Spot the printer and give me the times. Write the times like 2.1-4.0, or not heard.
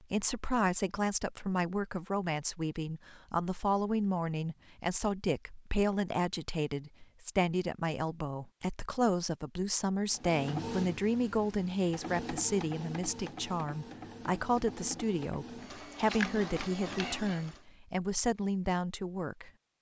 10.1-17.6.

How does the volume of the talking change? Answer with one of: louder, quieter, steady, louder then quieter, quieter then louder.
steady.